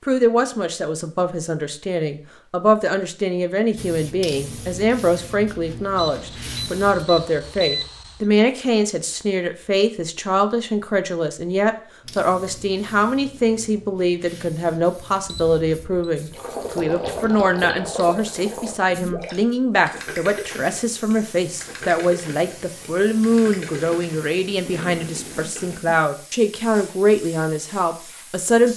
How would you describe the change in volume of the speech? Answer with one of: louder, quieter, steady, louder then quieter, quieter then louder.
steady.